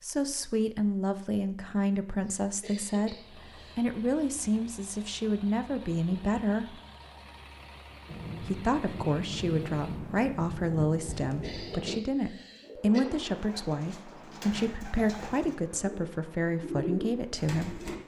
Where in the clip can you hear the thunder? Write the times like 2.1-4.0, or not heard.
8.1-12.0.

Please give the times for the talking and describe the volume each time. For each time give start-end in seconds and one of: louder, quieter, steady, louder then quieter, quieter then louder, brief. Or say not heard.
0.0-6.8 steady
8.4-17.8 steady.